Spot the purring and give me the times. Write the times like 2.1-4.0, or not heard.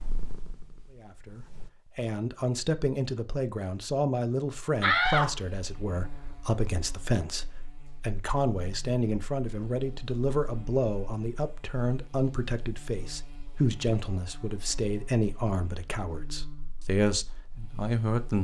0.0-1.7.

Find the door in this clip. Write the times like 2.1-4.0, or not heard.
4.8-5.3.